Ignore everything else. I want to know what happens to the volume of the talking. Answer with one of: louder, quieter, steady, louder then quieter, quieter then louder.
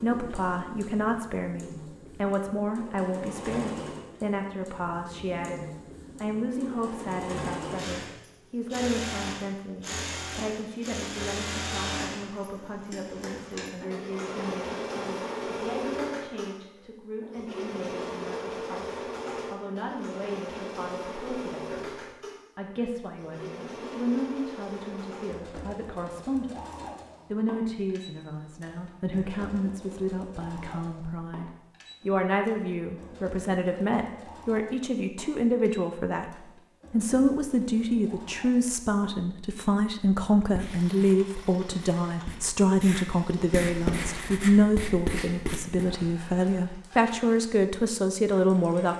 quieter then louder.